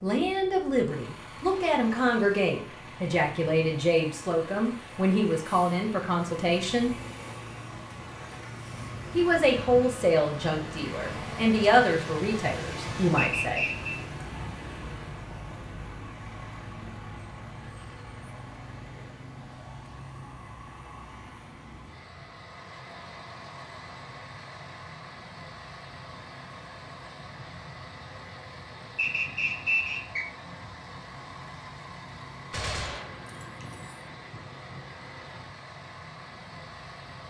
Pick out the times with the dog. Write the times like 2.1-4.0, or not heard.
not heard.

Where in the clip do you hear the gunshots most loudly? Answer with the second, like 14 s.
33 s.